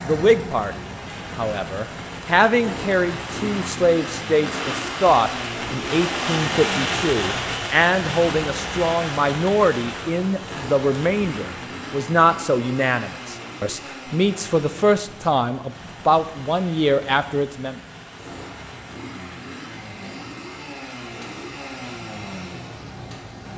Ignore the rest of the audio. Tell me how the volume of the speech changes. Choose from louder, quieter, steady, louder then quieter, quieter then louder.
steady.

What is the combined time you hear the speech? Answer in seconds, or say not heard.
18 s.